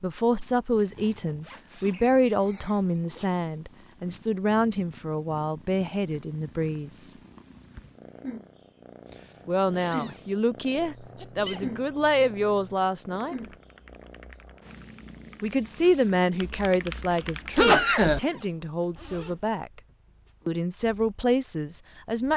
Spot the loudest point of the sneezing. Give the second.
18 s.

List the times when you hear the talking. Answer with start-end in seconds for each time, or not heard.
0.0-7.2, 9.4-13.3, 15.4-19.8, 20.4-22.3.